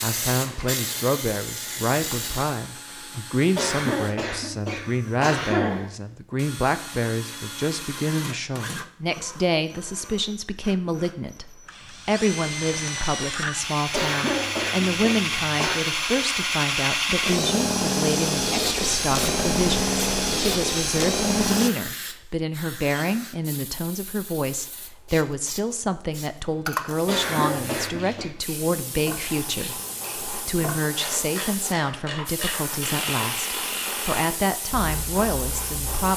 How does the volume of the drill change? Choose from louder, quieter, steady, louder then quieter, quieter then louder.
louder.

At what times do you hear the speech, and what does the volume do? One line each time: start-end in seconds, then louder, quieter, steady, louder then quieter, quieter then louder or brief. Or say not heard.
0.0-36.1 steady.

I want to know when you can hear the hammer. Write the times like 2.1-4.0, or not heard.
not heard.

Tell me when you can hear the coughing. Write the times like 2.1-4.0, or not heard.
3.5-5.9, 13.9-15.8, 27.1-28.4.